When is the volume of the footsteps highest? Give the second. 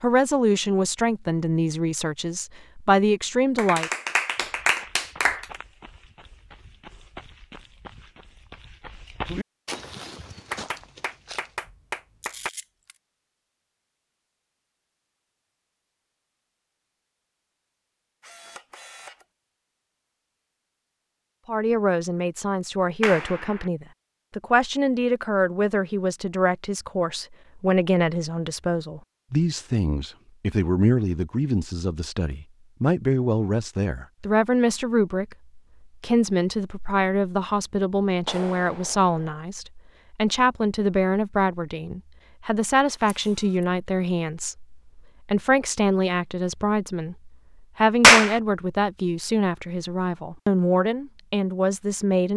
9 s.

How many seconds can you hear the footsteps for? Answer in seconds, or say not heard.
7 s.